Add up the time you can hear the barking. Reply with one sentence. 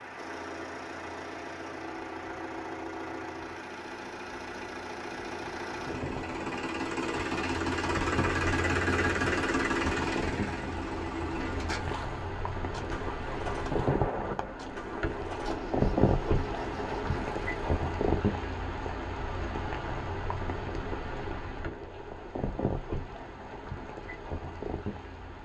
You can't hear the barking here.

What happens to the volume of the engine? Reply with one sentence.
The volume of the engine goes up, then down.